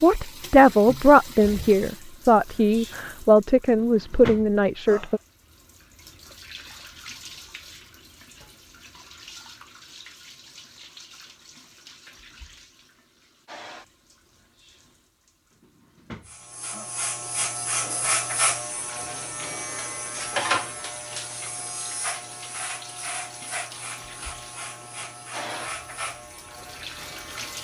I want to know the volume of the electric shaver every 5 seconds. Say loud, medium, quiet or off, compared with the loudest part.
off, off, off, loud, loud, medium.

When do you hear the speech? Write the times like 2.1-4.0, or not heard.
0.0-5.2.